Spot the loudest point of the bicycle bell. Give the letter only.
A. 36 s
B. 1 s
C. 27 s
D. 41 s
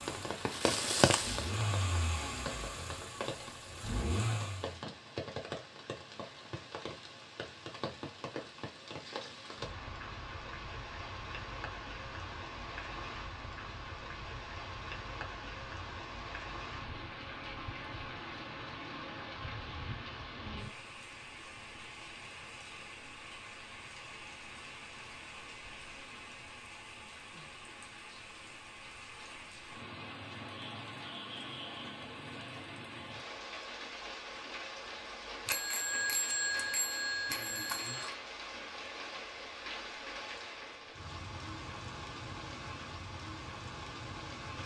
A.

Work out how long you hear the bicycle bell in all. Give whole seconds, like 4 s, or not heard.
3 s.